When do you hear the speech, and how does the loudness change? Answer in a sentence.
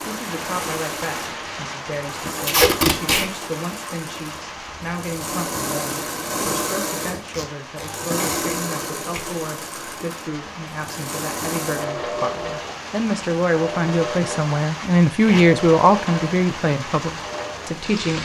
The speech can be heard from 0.1 to 18.1 s, getting louder.